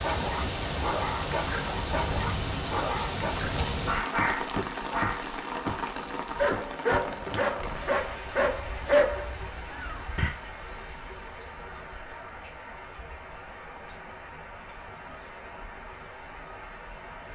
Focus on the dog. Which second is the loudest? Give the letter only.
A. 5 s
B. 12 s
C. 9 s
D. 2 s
C.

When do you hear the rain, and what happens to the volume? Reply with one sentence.
You can hear the rain from 0.0 to 17.3 s, getting quieter.